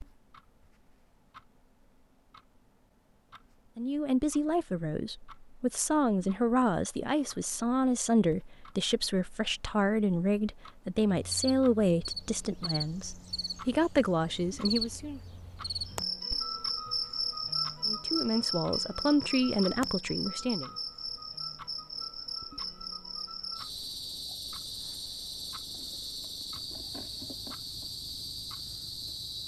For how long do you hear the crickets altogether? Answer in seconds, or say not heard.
18 s.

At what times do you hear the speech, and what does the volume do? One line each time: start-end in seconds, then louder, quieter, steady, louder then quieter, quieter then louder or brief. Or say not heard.
3.8-15.2 steady
17.9-20.7 brief.